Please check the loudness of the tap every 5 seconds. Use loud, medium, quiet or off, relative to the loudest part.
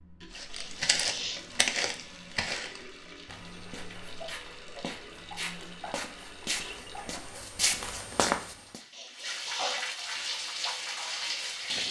quiet, medium, loud.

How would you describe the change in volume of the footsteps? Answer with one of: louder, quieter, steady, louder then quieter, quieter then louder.
quieter then louder.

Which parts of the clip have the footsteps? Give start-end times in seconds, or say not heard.
0.3-8.8.